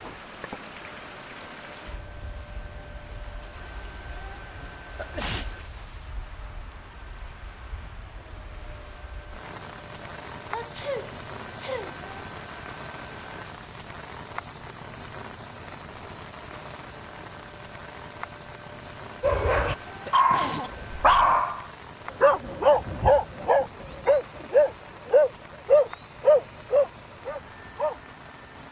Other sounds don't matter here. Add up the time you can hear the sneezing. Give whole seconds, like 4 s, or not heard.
3 s.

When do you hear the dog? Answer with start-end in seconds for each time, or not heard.
19.2-27.9.